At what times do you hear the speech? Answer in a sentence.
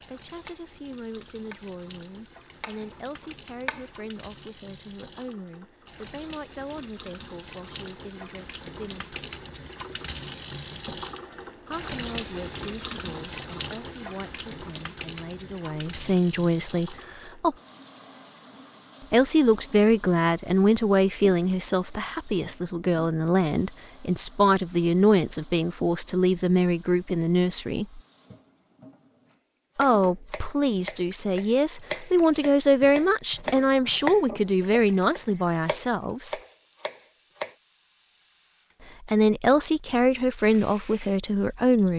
The speech can be heard from 0.0 to 9.2 s, from 11.6 to 17.6 s, from 19.1 to 28.0 s, from 29.8 to 36.4 s and from 39.0 to 41.9 s.